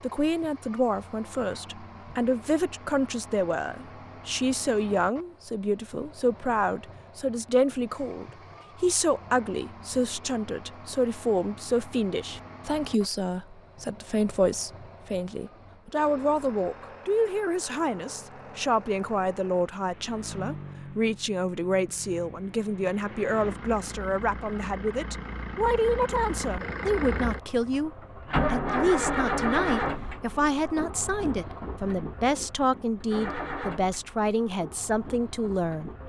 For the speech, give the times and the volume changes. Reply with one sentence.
The speech can be heard from 0.0 to 27.9 s, at a steady volume; and from 28.5 to 35.9 s, at a steady volume.